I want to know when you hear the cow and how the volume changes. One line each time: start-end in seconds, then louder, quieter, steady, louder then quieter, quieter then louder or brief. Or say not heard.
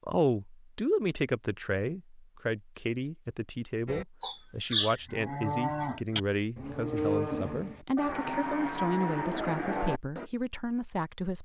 3.9-10.3 steady.